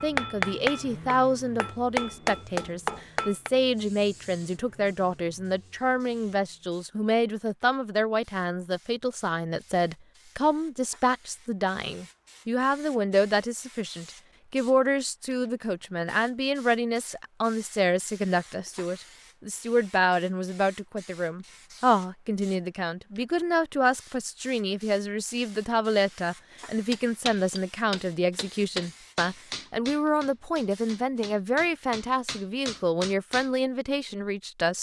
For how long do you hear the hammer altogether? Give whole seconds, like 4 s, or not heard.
10 s.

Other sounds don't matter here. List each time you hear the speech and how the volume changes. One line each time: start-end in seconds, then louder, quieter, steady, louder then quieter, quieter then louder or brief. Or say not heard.
0.0-34.7 steady.